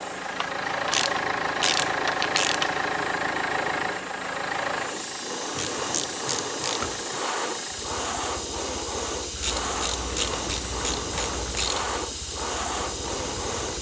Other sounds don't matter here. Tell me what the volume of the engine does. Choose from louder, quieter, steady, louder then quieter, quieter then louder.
quieter.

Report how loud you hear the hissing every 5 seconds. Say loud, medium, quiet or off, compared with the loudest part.
medium, loud, loud.